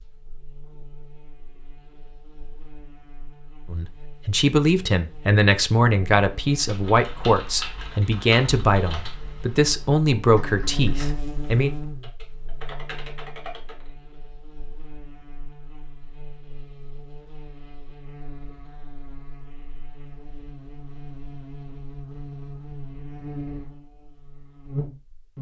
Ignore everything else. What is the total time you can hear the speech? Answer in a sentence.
The speech can be heard for 8 seconds in total.